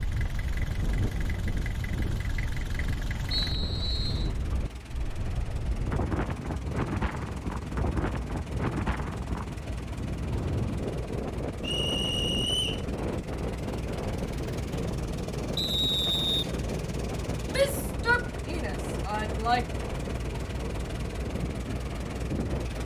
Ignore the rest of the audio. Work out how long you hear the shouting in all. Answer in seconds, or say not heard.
2 s.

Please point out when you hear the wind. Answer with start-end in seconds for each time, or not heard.
0.0-22.8.